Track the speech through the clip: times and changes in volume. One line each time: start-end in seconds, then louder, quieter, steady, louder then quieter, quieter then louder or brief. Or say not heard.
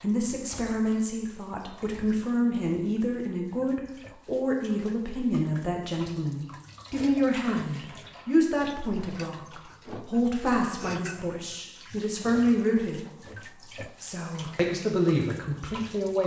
0.0-13.1 steady
14.0-16.2 brief.